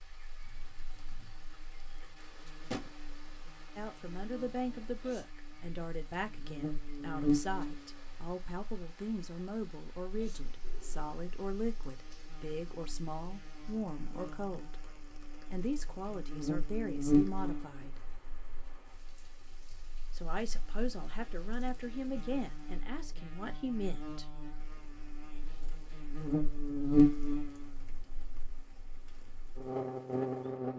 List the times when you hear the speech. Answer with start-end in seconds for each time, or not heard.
3.8-18.0, 20.1-24.2.